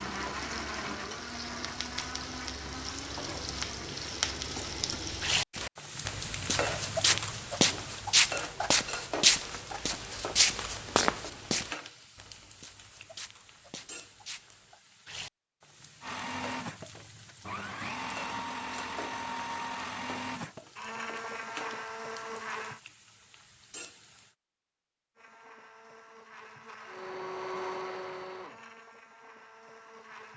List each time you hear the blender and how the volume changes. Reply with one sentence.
The blender can be heard from 0.0 to 4.7 s, getting quieter; from 16.0 to 22.8 s, at a steady volume; and from 25.1 to 30.3 s, getting louder then quieter.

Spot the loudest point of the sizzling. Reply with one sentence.
The volume of the sizzling peaks at 5 seconds.